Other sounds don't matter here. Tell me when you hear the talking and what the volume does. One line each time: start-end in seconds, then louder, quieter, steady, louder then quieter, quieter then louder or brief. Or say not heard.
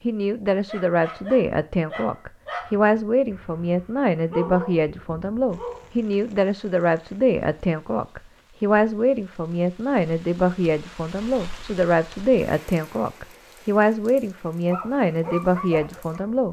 0.0-16.4 steady.